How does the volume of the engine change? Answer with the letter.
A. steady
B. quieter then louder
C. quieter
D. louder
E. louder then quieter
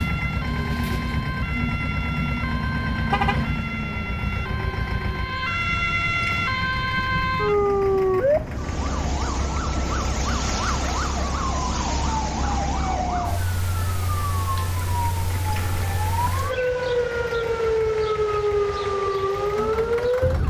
C.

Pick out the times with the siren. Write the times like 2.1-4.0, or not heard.
0.0-20.4.